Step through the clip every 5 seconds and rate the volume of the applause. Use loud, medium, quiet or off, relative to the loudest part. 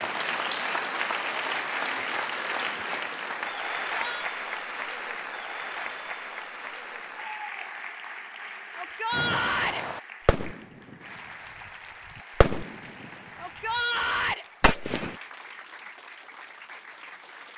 loud, medium, quiet, quiet.